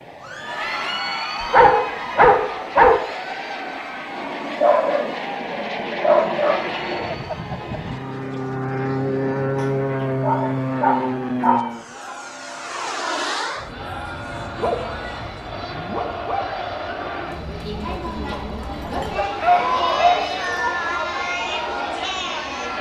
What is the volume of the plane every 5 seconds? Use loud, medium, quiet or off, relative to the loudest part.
medium, loud, loud, quiet, quiet.